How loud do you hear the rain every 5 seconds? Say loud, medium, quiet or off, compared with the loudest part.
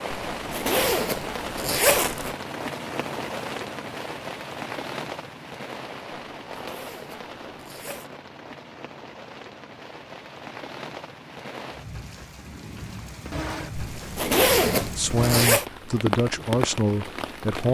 loud, medium, medium, loud.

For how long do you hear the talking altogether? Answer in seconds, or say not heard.
3 s.